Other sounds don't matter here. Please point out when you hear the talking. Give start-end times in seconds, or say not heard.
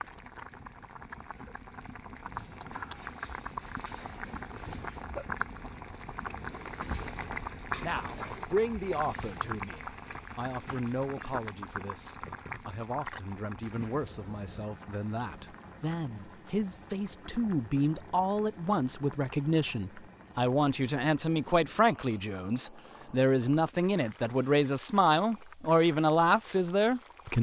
7.8-27.3.